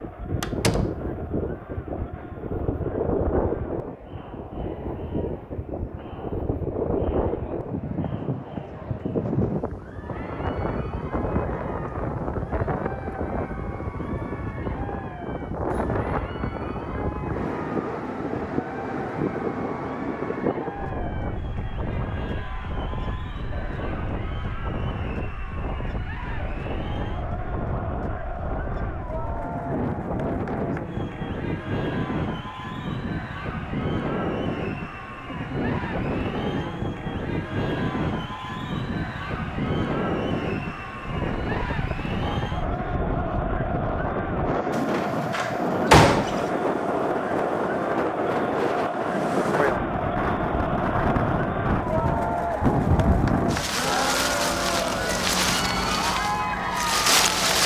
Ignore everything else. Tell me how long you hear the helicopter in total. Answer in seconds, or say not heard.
not heard.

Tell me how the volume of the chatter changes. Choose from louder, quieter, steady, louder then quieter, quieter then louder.
louder.